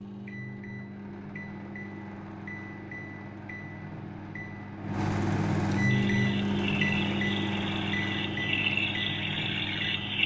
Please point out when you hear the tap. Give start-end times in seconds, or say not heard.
5.8-10.2.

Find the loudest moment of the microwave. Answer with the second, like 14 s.
6 s.